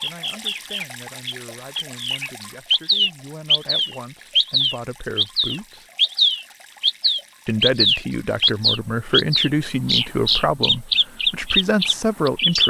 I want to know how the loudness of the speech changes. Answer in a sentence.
The loudness of the speech goes up.